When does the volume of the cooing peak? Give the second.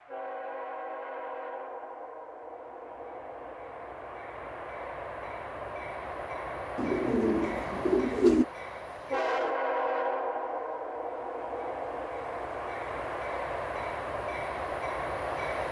8 s.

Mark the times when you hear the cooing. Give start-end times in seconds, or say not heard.
6.8-8.4.